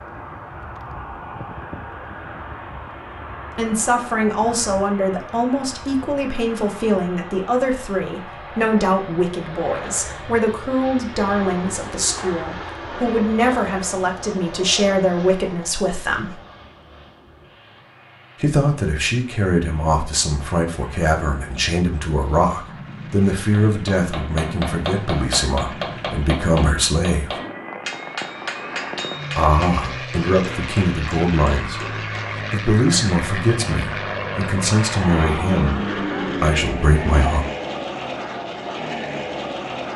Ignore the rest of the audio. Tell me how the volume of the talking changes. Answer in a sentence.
The loudness of the talking stays about the same.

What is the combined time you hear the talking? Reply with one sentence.
You can hear the talking for 30 seconds altogether.